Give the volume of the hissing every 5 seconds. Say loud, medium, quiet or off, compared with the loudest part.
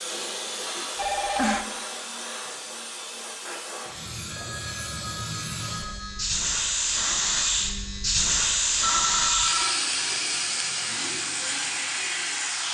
medium, loud, loud.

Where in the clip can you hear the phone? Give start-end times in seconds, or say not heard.
0.9-1.6, 4.3-6.3, 8.8-9.8.